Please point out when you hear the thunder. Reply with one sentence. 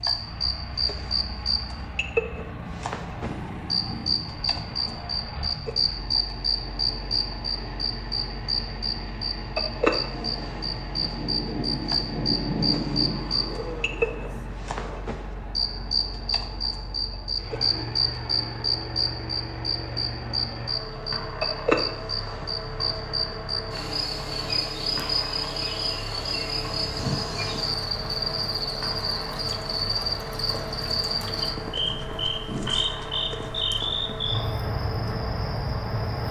The thunder can be heard from 10.1 to 13.6 s.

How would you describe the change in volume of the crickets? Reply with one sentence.
The loudness of the crickets stays about the same.